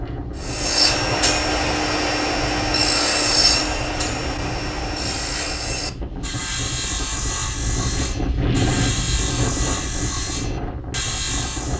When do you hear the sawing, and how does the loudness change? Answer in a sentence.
The sawing can be heard from 0.3 to 11.7 s, getting quieter.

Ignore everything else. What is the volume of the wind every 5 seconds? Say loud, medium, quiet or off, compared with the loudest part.
medium, loud, loud.